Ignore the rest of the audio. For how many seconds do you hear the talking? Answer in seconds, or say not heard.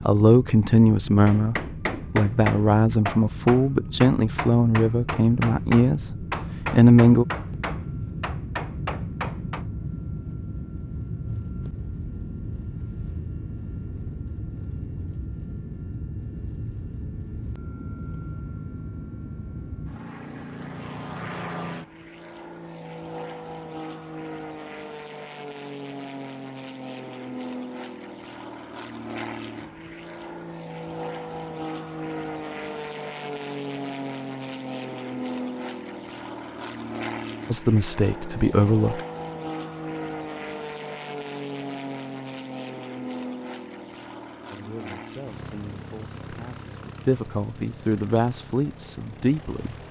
14 s.